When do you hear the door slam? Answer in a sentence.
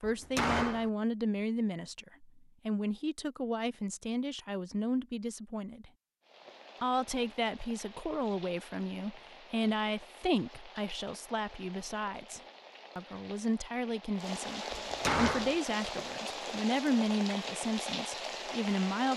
The door slam can be heard from 0.0 to 0.9 s and from 14.7 to 15.6 s.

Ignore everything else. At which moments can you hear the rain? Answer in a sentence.
You can hear the rain from 6.2 to 19.1 s.